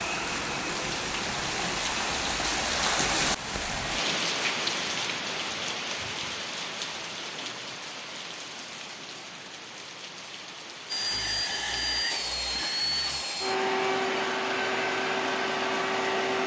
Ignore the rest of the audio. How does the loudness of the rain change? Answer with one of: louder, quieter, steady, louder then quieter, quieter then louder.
quieter.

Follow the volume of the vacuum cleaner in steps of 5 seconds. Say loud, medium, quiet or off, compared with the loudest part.
medium, off, loud, loud.